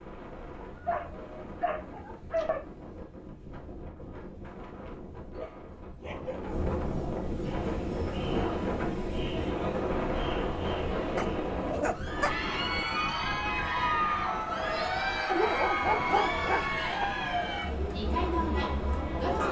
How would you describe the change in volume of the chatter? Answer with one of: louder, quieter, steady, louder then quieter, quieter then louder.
louder.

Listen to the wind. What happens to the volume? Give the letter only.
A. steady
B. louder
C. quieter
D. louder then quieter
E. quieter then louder
D.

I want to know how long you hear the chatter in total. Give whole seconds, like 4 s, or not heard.
12 s.